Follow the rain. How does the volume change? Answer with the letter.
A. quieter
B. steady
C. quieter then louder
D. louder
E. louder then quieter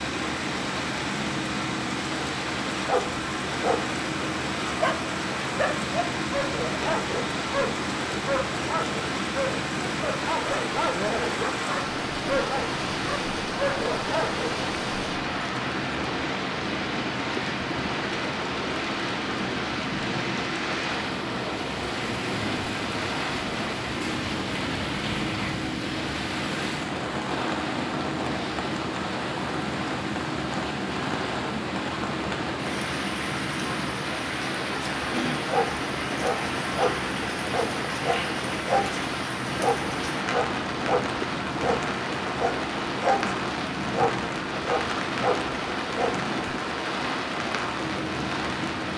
B.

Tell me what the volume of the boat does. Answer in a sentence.
The volume of the boat stays about the same.